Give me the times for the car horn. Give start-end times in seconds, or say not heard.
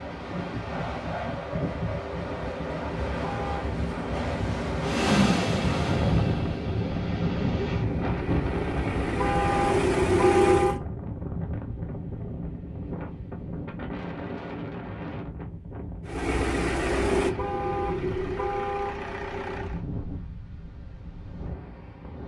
3.2-3.6, 9.2-10.8, 17.4-19.0.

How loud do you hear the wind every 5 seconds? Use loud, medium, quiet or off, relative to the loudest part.
loud, loud, medium, medium, quiet.